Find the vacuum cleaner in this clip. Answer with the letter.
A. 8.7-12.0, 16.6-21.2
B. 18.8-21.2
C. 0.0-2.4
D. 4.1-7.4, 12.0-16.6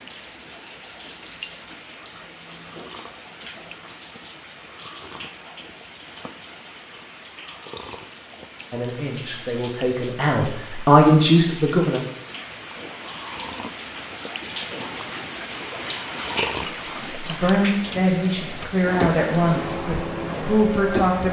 B.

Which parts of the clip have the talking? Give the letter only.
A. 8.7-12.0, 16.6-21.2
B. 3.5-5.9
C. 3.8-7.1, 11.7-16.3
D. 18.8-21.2
A.